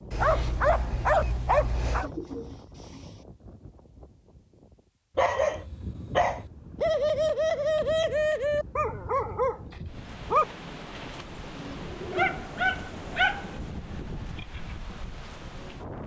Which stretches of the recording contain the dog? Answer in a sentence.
The dog can be heard from 0.1 to 2.1 s, from 5.2 to 6.5 s, from 8.8 to 10.4 s and from 12.1 to 13.7 s.